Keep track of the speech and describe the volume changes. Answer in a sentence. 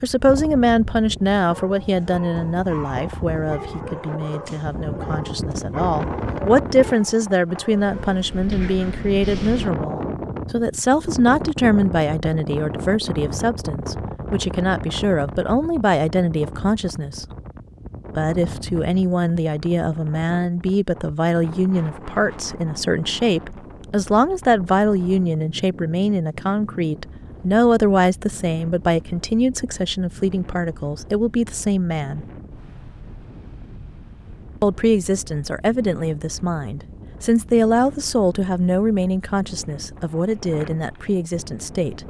The volume of the speech stays about the same.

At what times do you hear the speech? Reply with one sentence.
You can hear the speech from 0.0 to 17.2 s, from 18.1 to 32.2 s and from 34.6 to 42.0 s.